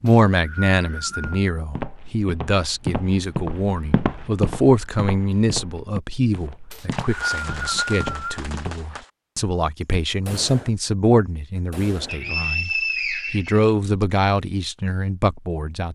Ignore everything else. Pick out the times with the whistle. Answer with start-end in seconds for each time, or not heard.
0.1-1.4, 6.7-8.4, 12.1-14.1.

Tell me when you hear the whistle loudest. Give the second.
13 s.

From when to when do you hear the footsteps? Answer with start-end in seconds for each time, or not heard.
1.1-8.8.